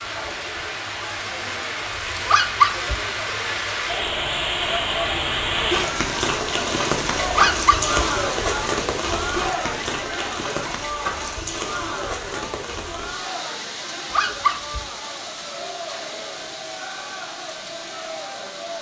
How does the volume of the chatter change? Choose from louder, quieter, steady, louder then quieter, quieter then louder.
louder then quieter.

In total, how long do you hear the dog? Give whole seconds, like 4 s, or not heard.
2 s.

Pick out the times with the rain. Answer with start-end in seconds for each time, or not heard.
0.0-18.7.